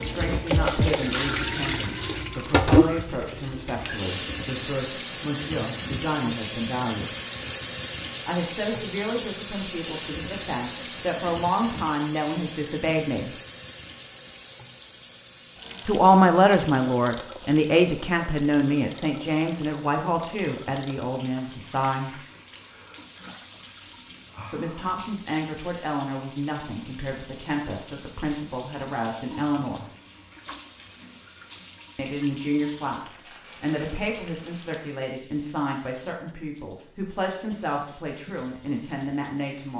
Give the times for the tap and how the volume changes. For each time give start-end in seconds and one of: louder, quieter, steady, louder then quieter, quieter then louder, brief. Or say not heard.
0.0-39.7 quieter.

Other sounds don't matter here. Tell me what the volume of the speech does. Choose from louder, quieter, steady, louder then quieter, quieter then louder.
louder then quieter.